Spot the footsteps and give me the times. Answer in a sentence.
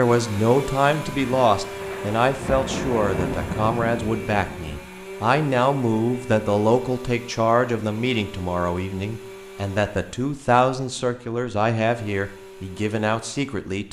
You can't hear the footsteps here.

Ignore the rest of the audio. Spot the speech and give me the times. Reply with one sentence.
You can hear the speech from 0.0 to 13.8 s.